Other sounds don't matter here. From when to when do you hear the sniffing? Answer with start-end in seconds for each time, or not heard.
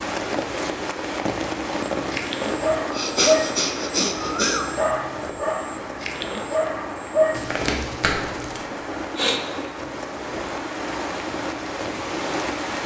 2.9-4.8, 8.7-9.4.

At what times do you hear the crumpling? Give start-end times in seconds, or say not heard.
7.3-8.7.